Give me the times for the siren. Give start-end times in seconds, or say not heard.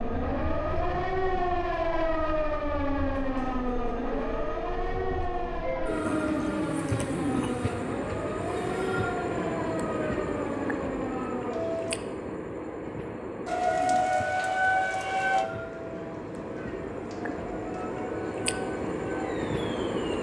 0.0-11.9, 13.4-20.1.